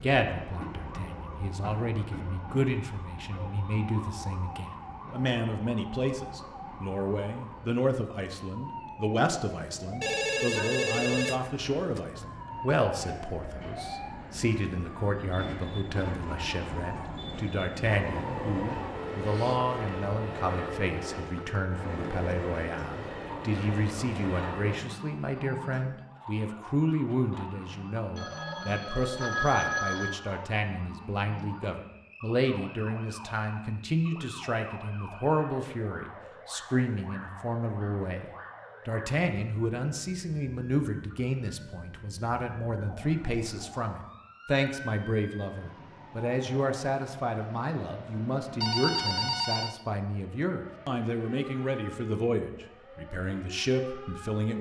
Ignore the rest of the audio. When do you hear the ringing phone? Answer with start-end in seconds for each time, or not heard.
10.0-12.0, 28.1-30.2, 48.6-49.8.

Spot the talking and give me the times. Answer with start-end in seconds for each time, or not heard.
0.0-38.2, 38.9-54.5.